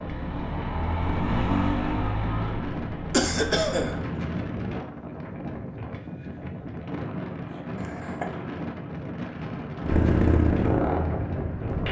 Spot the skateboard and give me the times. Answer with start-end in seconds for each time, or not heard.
not heard.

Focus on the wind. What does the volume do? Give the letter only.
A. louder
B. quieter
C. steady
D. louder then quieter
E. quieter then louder
C.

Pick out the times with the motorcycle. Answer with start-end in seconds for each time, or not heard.
0.0-4.8, 9.8-11.8.